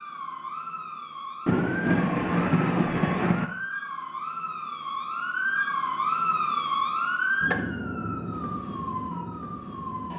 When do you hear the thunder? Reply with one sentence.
The thunder can be heard from 1.4 to 3.5 s.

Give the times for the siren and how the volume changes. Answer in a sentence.
The siren can be heard from 0.0 to 10.1 s, getting louder then quieter.